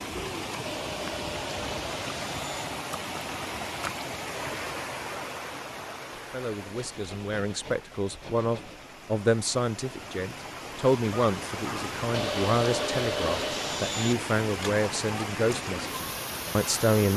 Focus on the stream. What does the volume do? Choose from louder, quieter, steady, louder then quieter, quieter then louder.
quieter then louder.